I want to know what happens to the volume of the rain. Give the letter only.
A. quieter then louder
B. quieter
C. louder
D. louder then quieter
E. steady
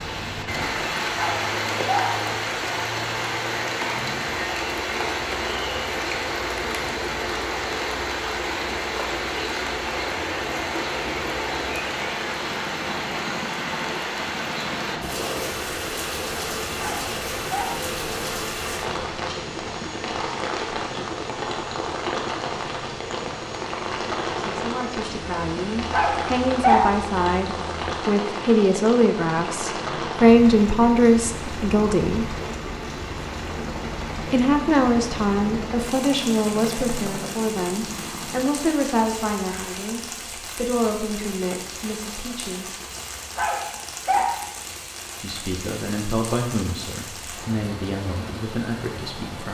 B.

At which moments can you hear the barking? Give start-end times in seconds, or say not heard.
1.1-2.2, 16.8-17.9, 25.9-26.9, 43.4-44.4.